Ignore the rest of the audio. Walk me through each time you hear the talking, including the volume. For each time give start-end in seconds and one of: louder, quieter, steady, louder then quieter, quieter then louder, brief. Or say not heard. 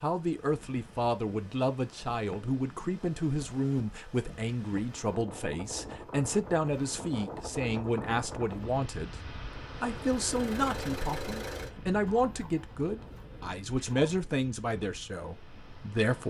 0.0-16.2 steady.